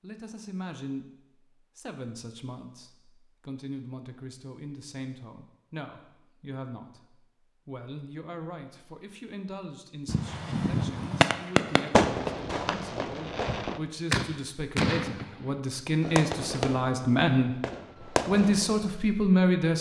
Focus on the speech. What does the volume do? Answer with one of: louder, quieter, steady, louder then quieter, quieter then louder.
louder.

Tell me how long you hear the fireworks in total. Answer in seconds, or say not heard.
9 s.